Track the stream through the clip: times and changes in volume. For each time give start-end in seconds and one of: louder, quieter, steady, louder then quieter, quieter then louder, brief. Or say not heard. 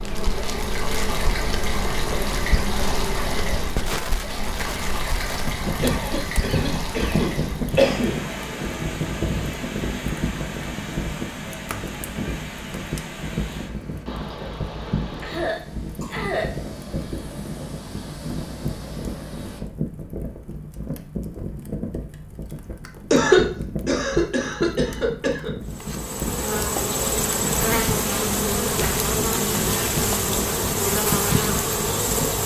0.1-19.6 quieter.